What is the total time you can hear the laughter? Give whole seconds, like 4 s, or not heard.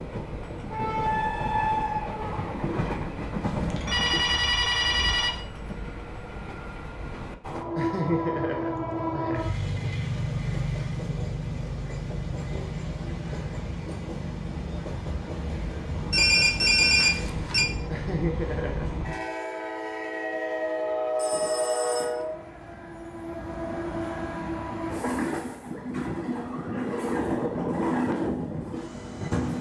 3 s.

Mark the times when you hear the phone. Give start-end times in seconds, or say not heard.
3.4-5.4, 16.1-17.6, 21.1-22.1.